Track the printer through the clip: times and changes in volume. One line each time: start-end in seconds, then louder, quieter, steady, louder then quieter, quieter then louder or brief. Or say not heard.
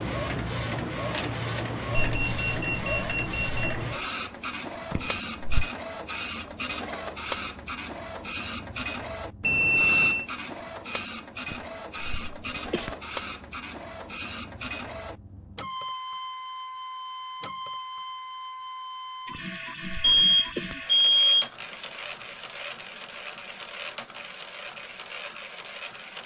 0.0-26.2 quieter.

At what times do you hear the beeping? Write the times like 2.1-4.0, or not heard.
1.9-3.8, 9.4-10.2, 20.0-21.5.